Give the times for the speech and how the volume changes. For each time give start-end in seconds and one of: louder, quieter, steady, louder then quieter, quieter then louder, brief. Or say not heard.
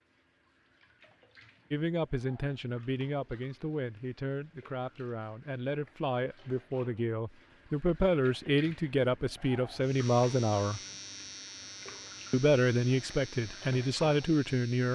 1.7-10.8 louder
12.3-14.9 brief.